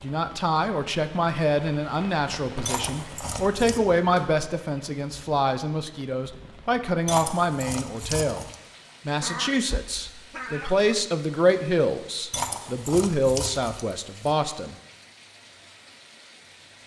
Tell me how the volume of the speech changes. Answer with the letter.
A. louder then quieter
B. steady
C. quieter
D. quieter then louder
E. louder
B.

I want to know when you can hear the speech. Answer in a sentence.
The speech can be heard from 0.0 to 8.4 s and from 9.1 to 14.8 s.